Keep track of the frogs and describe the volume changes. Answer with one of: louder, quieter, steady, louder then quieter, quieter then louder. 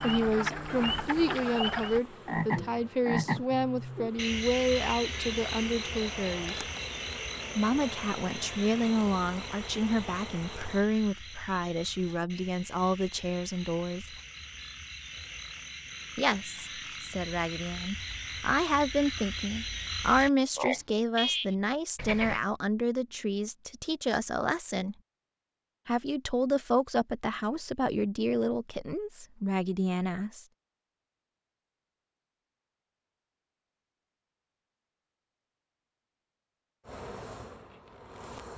quieter then louder.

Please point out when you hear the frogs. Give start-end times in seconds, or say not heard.
0.0-22.4.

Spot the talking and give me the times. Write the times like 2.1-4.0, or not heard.
0.0-6.7, 7.5-14.2, 16.1-24.9, 25.9-30.4.